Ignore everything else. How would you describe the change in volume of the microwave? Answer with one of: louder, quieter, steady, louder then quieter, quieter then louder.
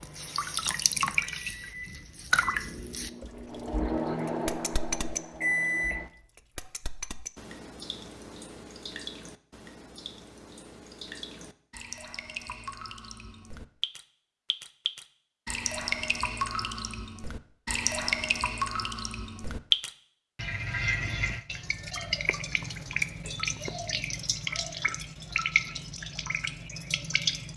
louder.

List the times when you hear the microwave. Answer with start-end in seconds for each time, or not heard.
0.0-6.1.